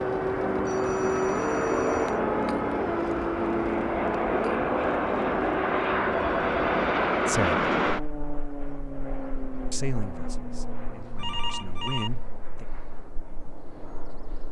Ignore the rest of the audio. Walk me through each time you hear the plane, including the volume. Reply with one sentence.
The plane can be heard from 0.0 to 14.4 s, getting quieter.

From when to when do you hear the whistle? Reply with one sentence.
You can't hear the whistle here.